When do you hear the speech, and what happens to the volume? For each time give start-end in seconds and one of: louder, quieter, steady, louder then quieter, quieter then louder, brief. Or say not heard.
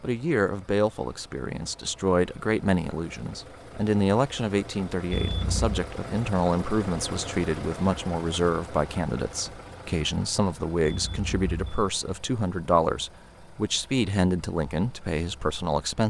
0.0-16.0 steady.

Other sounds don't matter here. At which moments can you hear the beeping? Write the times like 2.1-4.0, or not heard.
5.1-5.8, 10.8-11.9.